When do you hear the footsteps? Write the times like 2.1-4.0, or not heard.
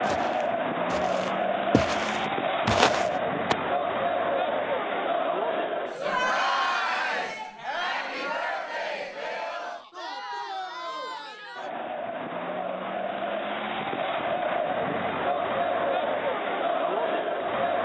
0.0-3.5.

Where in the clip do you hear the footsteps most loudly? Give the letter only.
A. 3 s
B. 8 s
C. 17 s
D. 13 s
A.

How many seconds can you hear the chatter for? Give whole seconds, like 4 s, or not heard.
18 s.